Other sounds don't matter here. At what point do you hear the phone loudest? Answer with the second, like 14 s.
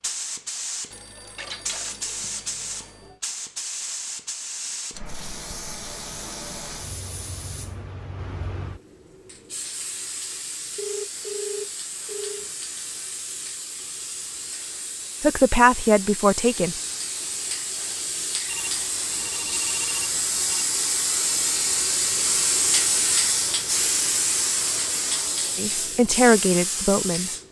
11 s.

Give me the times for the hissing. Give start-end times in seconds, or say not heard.
0.0-27.4.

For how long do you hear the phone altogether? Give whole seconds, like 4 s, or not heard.
6 s.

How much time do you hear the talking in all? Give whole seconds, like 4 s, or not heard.
3 s.